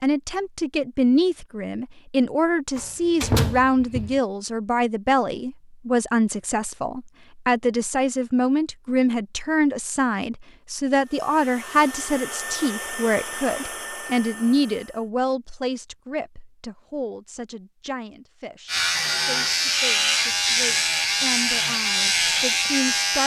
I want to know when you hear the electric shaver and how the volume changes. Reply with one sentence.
You can hear the electric shaver from 18.6 to 23.2 s, at a steady volume.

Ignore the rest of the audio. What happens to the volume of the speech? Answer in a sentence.
The loudness of the speech goes down.